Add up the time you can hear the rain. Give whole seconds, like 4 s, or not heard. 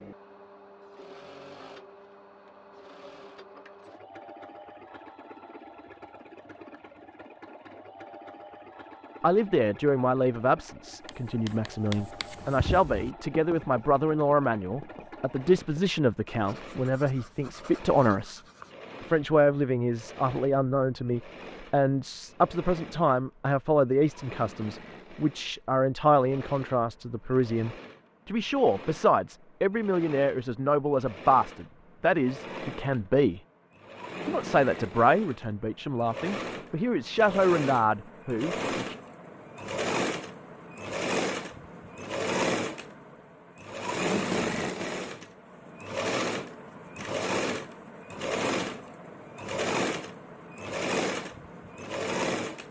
not heard.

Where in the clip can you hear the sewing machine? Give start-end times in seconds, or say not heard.
0.0-52.6.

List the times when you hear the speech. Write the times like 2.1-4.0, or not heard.
9.2-18.4, 19.0-33.4, 34.2-39.0.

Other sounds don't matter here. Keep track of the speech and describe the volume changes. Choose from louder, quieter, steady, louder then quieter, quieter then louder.
steady.